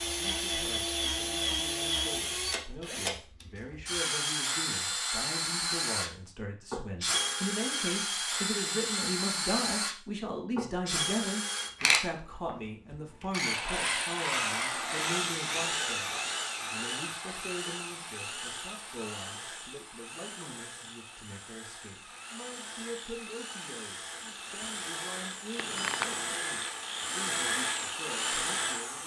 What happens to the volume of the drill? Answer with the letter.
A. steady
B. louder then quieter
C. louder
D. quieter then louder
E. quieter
D.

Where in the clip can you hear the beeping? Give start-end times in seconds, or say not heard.
25.6-26.4.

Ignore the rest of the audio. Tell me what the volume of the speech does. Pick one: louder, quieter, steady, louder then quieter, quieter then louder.
louder then quieter.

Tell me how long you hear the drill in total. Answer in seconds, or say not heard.
29 s.